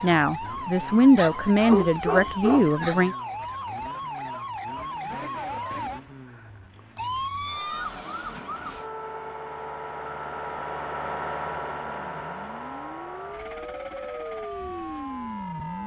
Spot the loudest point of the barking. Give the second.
2 s.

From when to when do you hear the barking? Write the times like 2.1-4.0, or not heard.
1.1-3.1.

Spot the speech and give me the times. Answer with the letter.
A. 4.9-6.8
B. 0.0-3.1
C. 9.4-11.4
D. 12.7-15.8
B.